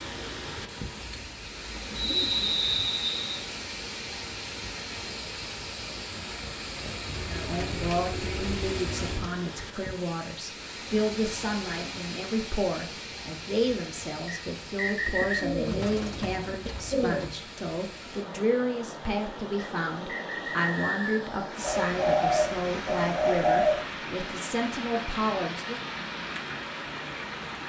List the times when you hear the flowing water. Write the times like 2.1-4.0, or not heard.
0.0-27.6.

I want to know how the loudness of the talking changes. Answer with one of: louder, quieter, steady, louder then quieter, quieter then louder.
steady.